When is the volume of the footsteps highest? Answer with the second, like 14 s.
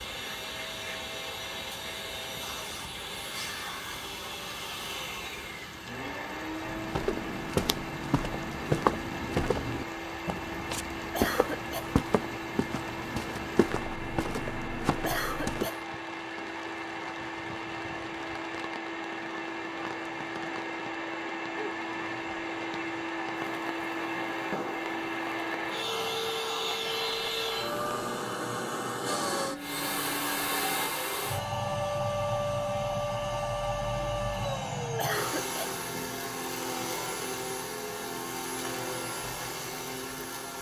9 s.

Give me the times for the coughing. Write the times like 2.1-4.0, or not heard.
11.1-11.9, 15.1-15.8, 35.0-35.8.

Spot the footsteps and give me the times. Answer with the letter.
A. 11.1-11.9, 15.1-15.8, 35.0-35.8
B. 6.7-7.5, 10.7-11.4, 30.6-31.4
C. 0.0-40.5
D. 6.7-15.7
D.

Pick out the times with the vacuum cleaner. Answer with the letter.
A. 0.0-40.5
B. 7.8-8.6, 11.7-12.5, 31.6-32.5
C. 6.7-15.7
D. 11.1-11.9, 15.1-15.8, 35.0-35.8
A.